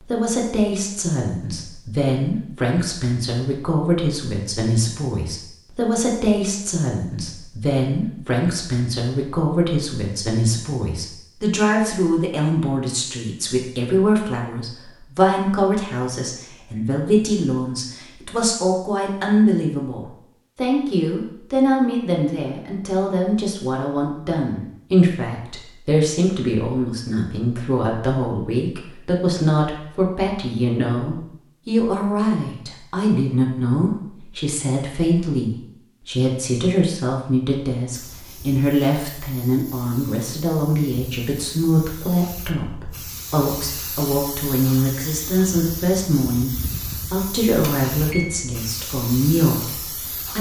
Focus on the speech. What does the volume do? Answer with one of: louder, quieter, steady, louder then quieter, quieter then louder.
steady.